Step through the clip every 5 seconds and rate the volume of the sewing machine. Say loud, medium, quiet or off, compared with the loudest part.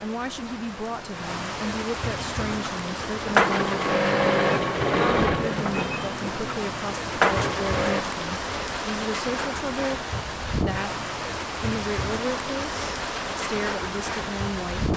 loud, loud, off.